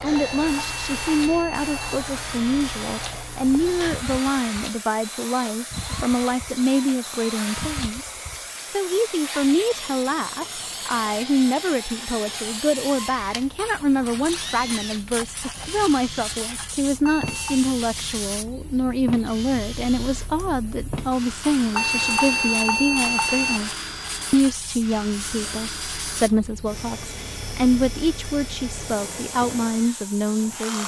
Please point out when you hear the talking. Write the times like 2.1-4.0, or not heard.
0.0-30.8.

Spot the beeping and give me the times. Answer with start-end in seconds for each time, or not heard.
0.1-1.9, 17.0-17.7, 21.7-23.6.